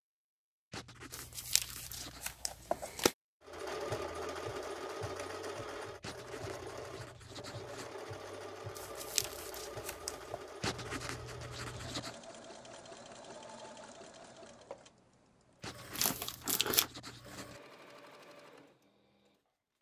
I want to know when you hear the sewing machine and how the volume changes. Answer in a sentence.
You can hear the sewing machine from 3.4 to 19.6 s, getting quieter.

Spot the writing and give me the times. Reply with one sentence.
The writing can be heard from 0.7 to 2.3 s, from 6.0 to 8.0 s, from 10.6 to 12.2 s and from 15.6 to 17.6 s.